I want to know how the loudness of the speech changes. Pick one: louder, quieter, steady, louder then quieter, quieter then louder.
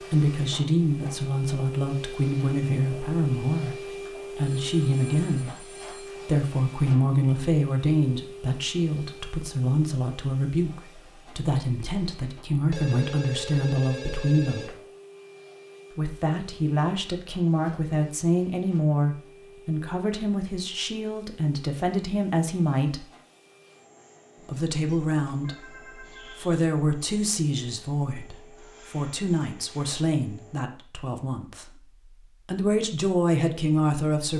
steady.